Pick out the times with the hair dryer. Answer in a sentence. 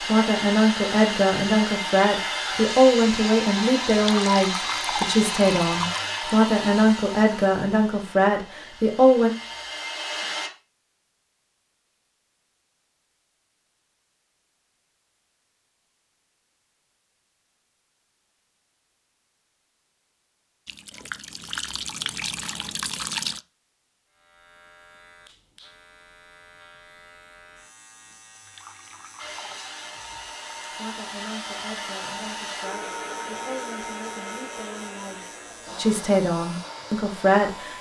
The hair dryer can be heard from 0.0 to 10.5 s and from 29.1 to 37.7 s.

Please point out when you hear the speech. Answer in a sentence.
You can hear the speech from 0.0 to 9.3 s and from 30.7 to 37.7 s.